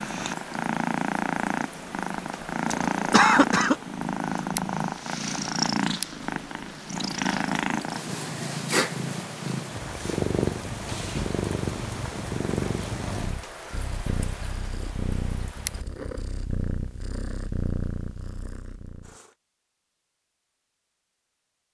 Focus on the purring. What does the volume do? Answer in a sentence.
The loudness of the purring goes down.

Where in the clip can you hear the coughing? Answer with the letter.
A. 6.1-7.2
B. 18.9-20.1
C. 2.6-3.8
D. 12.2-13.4
C.